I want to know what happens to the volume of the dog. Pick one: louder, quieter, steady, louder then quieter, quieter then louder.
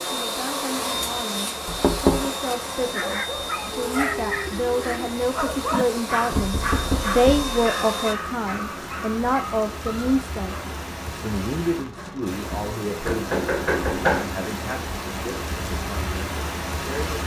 quieter.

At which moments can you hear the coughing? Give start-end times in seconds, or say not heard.
not heard.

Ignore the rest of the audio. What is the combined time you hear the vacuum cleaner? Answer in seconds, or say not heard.
8 s.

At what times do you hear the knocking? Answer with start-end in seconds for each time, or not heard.
1.6-2.3, 6.3-7.5, 13.1-14.3.